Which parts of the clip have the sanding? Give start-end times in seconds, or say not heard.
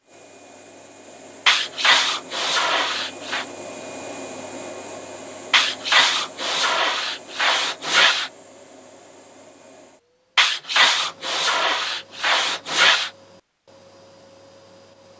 1.4-3.5, 5.5-8.3, 10.3-13.1.